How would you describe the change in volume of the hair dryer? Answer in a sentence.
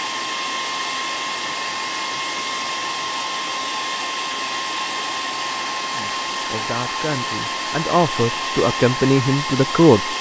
The volume of the hair dryer stays about the same.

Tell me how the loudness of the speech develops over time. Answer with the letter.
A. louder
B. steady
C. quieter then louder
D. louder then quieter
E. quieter
A.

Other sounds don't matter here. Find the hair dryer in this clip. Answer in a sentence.
You can hear the hair dryer from 0.0 to 10.1 s.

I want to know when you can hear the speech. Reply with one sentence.
The speech can be heard from 5.9 to 10.1 s.